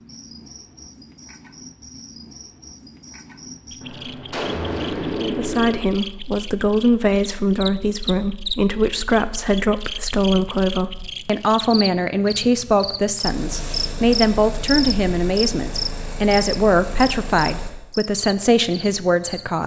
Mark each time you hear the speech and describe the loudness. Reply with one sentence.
You can hear the speech from 5.2 to 19.6 s, at a steady volume.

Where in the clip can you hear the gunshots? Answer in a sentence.
The gunshots can be heard from 3.8 to 5.8 s.